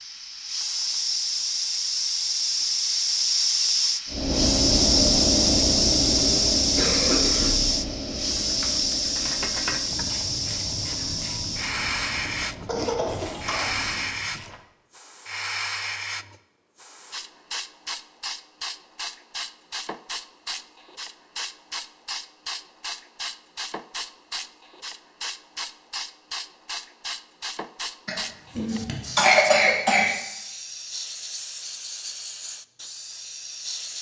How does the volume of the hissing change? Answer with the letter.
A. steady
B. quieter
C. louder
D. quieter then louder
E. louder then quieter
B.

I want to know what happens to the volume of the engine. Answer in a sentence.
The volume of the engine goes down.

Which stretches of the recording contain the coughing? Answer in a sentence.
The coughing can be heard from 6.2 to 7.8 s, from 12.7 to 13.8 s and from 28.1 to 30.1 s.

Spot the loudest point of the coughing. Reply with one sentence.
The loudest moment of the coughing is at 29 seconds.